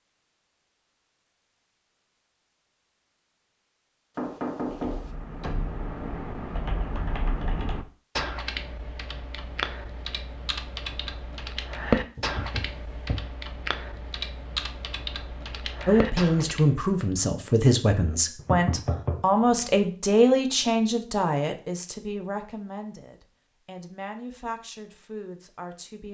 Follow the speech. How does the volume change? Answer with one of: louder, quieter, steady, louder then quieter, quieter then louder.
quieter.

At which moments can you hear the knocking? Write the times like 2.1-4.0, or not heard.
4.2-5.1, 12.2-13.2, 18.4-19.9.